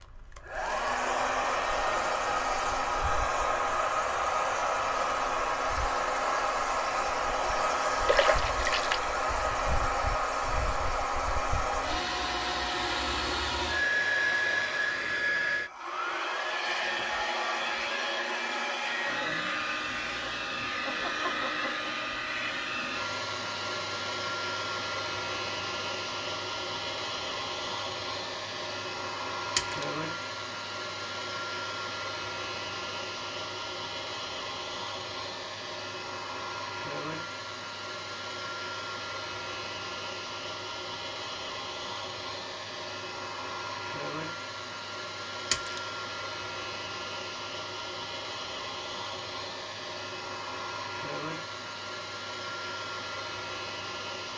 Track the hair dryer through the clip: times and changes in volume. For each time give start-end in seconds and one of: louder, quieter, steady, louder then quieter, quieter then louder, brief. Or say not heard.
0.0-54.3 quieter.